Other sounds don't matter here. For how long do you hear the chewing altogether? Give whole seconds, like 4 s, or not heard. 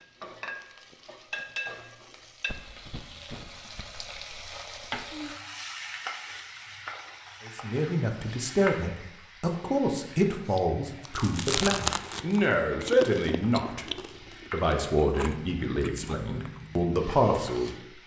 7 s.